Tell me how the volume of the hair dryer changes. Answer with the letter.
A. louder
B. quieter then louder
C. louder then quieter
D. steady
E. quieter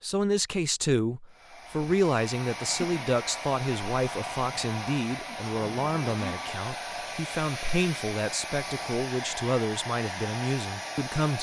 D.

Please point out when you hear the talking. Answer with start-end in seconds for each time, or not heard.
0.0-11.3.